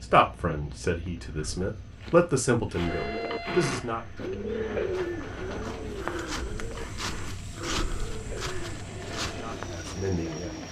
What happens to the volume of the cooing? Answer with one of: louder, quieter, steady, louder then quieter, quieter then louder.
quieter.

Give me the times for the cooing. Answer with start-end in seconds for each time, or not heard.
2.9-10.6.